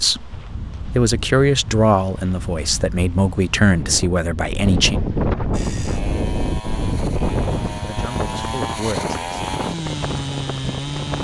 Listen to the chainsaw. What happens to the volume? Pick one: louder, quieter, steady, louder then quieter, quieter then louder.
louder.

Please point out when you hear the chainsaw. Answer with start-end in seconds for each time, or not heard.
5.5-11.1.